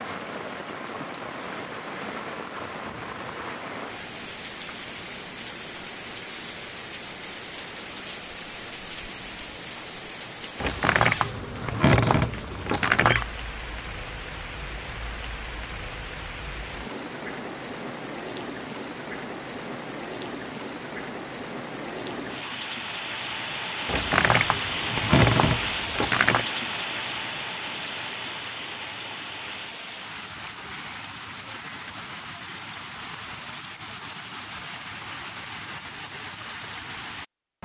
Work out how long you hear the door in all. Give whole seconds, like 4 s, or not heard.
5 s.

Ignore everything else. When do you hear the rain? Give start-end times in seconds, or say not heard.
0.0-37.6.